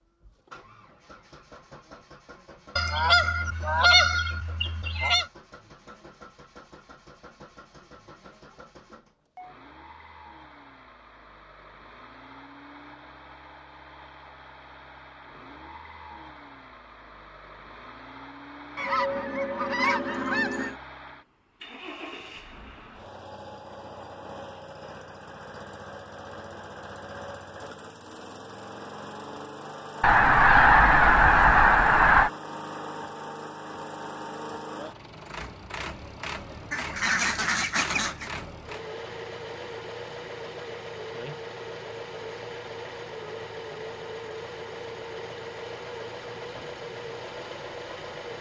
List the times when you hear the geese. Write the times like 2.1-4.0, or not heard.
2.8-5.2, 18.8-20.8, 30.0-32.3, 36.7-38.3.